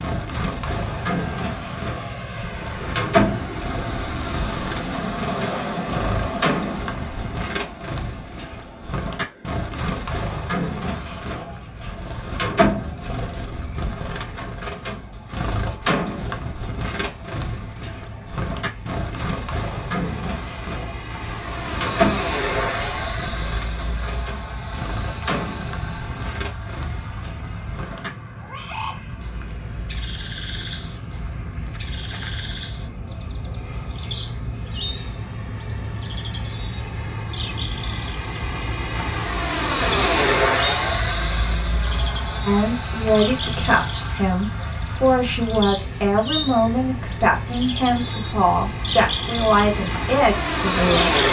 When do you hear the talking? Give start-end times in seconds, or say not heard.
42.5-51.2.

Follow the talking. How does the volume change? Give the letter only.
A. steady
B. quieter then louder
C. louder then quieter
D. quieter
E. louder
A.